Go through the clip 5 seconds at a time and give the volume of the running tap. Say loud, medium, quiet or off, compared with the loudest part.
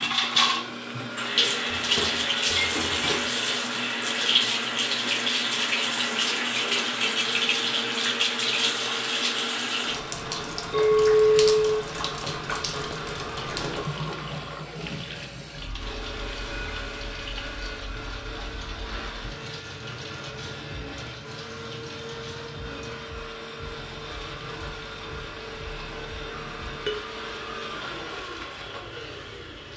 loud, loud, medium, quiet, quiet, quiet.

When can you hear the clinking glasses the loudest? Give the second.
11 s.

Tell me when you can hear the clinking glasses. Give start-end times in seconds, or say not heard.
1.8-3.2, 10.7-11.8.